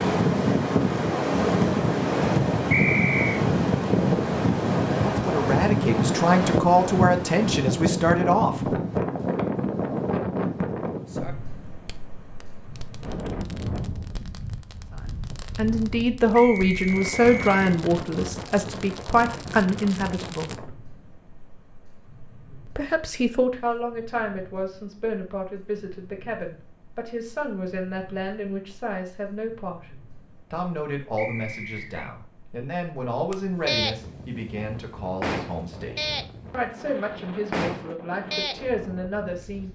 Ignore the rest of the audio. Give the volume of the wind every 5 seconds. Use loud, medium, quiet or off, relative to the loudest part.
loud, loud, medium, quiet, quiet, quiet, quiet, quiet.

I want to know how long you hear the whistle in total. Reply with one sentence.
The whistle can be heard for 3 seconds in total.